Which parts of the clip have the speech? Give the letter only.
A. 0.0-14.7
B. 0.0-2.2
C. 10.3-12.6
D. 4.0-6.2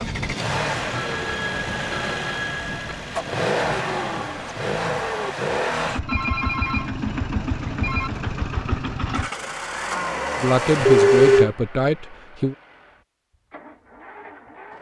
C.